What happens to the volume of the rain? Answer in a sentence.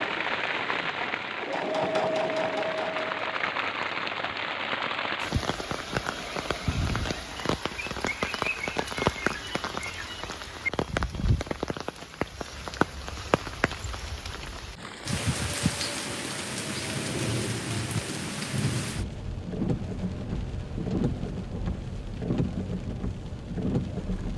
The volume of the rain stays about the same.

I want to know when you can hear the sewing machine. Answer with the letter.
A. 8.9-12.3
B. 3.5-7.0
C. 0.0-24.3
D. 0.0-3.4
D.